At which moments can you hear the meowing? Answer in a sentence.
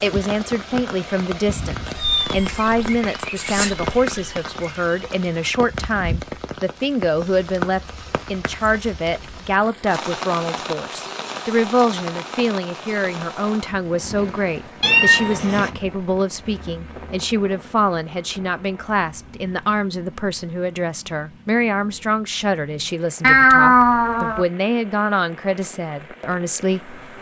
You can hear the meowing from 1.9 to 4.3 s, from 14.8 to 15.7 s and from 23.2 to 24.4 s.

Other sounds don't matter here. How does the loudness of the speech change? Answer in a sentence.
The loudness of the speech stays about the same.